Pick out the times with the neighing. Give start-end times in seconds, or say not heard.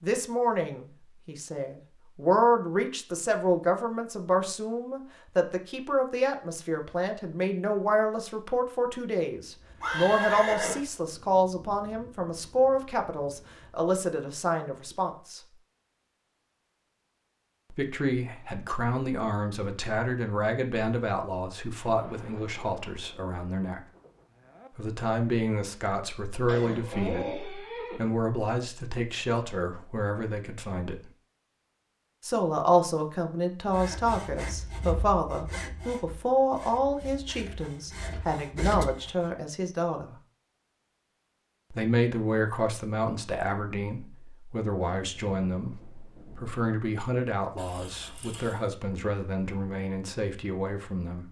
9.8-10.8, 26.4-28.0, 47.5-48.6.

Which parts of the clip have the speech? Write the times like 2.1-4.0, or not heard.
0.0-15.4, 17.7-23.8, 24.8-31.1, 32.2-40.1, 41.7-51.2.